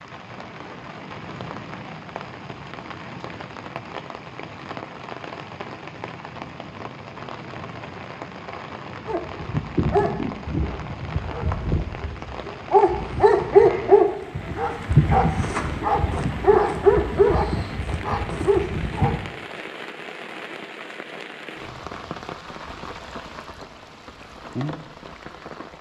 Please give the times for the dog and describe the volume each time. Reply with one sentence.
You can hear the dog from 9.1 to 19.2 s, getting louder then quieter.